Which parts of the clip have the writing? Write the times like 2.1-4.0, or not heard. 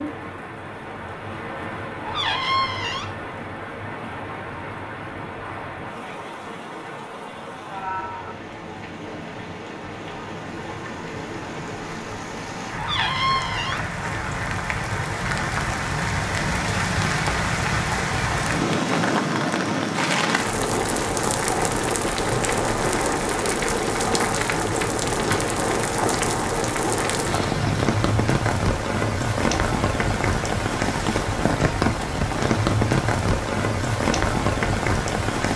not heard.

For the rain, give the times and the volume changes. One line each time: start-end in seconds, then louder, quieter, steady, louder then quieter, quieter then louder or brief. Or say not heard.
0.0-35.5 louder.